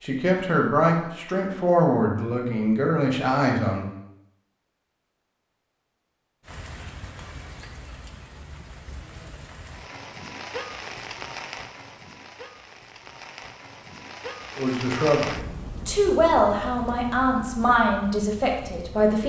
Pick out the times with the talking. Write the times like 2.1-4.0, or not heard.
0.0-3.9, 14.6-19.2.